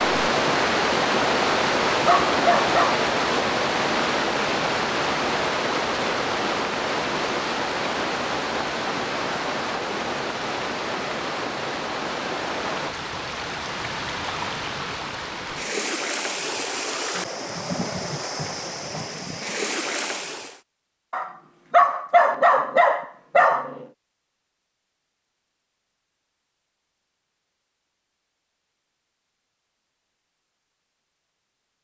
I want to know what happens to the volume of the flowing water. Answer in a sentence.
The loudness of the flowing water goes down.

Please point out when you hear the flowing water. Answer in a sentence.
You can hear the flowing water from 0.0 to 20.6 s.